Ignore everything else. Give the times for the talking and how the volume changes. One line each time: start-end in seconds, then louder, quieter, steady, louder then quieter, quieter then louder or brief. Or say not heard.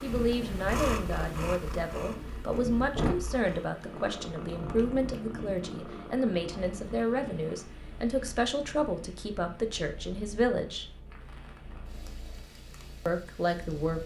0.0-10.8 steady
13.1-14.0 brief.